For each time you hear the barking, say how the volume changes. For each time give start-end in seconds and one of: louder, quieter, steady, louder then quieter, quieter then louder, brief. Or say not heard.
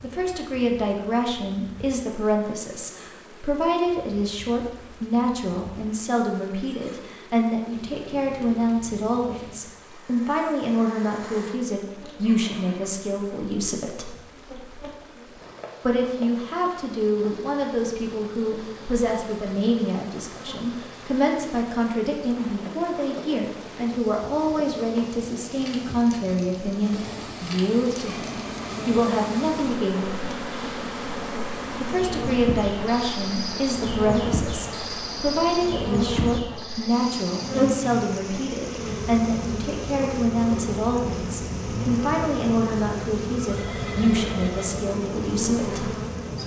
not heard.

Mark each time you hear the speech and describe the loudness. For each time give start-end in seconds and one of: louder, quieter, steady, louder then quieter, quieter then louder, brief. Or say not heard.
0.0-14.2 steady
15.8-30.4 steady
31.8-45.9 steady.